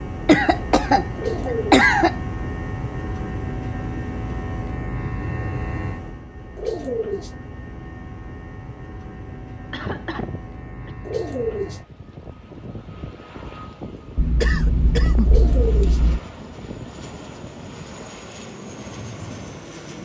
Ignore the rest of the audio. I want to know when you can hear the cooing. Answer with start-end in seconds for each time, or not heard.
1.1-1.9, 6.5-7.3, 11.1-11.8, 15.2-16.0.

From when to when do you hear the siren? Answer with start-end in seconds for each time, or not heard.
not heard.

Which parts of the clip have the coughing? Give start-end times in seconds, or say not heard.
0.2-2.1, 9.7-10.9, 14.2-16.2.